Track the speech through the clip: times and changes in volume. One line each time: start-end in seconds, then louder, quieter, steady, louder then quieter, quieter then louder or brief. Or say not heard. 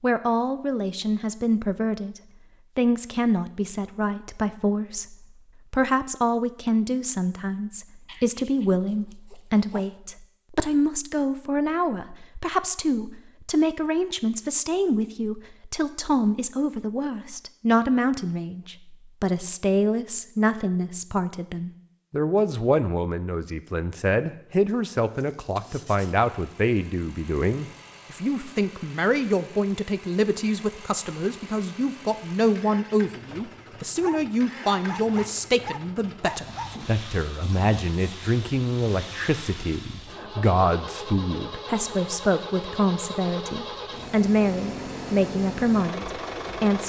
0.0-46.8 steady.